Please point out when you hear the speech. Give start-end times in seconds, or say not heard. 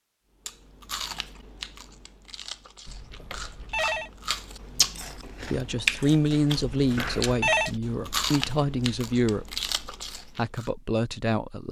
4.8-11.6.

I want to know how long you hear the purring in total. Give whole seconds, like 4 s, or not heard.
not heard.